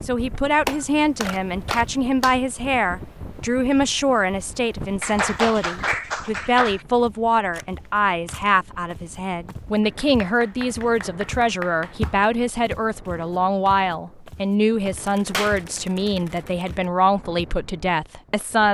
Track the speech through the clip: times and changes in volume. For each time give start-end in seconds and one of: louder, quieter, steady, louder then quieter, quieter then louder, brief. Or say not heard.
0.0-18.6 steady.